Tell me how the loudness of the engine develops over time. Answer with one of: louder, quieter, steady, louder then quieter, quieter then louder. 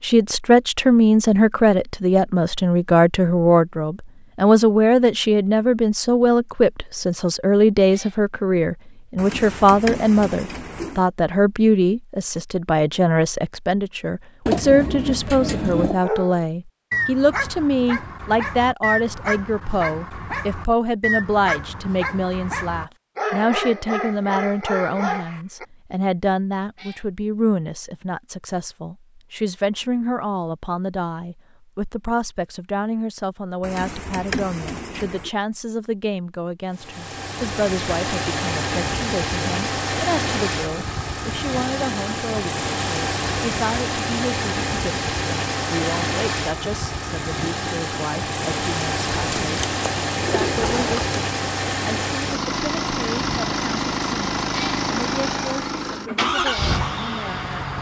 steady.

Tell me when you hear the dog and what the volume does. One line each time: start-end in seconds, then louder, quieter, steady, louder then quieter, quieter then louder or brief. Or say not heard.
16.0-25.6 steady.